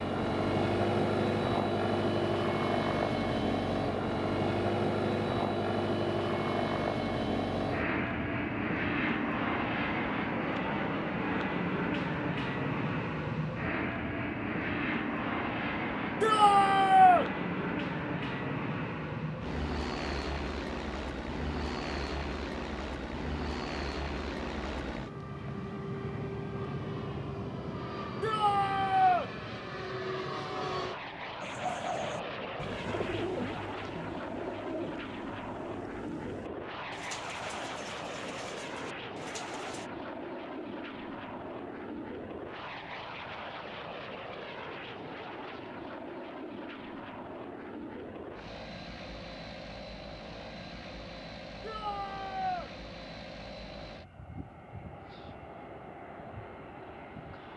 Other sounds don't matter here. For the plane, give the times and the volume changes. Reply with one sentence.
The plane can be heard from 0.0 to 57.5 s, getting quieter.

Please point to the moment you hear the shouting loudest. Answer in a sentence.
The loudest moment of the shouting is at 17 seconds.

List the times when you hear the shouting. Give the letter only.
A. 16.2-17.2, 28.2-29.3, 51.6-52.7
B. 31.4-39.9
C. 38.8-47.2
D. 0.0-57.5
A.